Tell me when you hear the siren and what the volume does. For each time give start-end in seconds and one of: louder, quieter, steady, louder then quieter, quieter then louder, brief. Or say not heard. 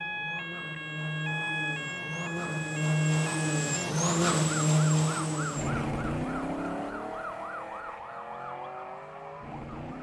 0.0-9.9 quieter.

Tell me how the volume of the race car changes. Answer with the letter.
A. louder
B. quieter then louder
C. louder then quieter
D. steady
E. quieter
C.